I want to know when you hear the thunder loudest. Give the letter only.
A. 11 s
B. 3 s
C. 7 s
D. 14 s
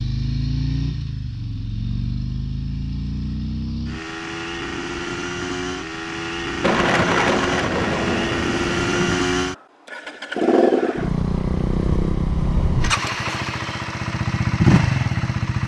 C.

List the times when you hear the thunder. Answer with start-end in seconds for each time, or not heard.
6.6-9.2.